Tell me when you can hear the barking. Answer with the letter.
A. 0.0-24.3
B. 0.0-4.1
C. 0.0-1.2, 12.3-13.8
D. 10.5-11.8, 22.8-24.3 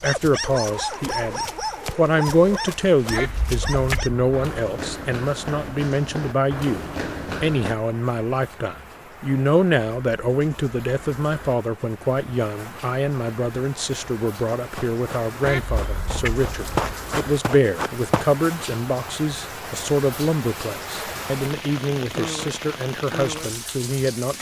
B.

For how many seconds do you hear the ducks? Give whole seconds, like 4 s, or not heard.
3 s.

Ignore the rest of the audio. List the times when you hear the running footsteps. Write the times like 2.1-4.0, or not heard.
0.1-7.8, 14.6-18.2.